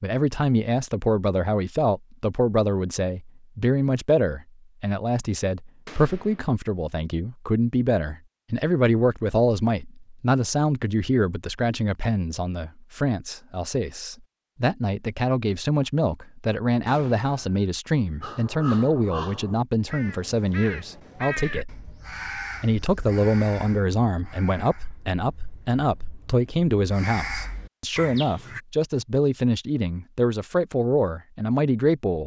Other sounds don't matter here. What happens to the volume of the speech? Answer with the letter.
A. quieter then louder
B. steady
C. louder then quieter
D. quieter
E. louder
B.